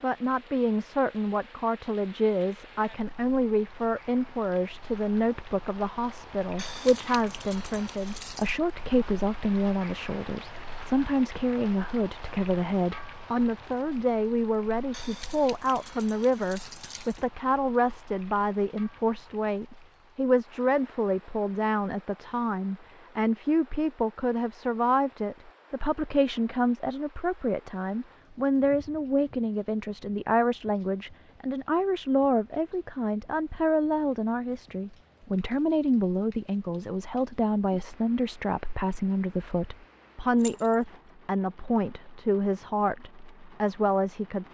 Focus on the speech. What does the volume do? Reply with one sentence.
The loudness of the speech stays about the same.